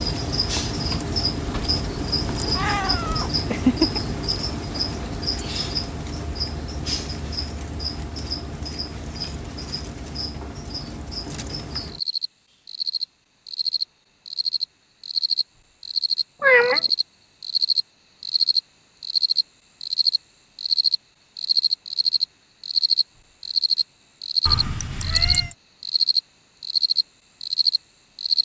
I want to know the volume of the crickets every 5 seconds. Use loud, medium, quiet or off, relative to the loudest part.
medium, medium, medium, loud, loud, loud.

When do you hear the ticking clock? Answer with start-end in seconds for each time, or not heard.
not heard.